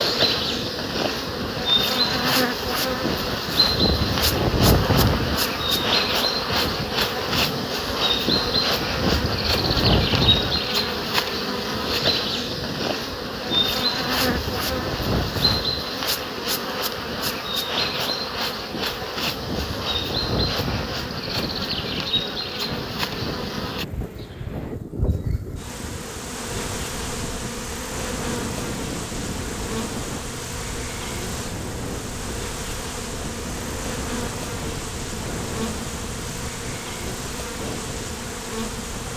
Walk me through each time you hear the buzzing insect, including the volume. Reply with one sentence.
The buzzing insect can be heard from 0.0 to 39.1 s, getting quieter.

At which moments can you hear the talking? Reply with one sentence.
You can't hear the talking here.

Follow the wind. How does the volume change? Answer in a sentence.
The volume of the wind goes down.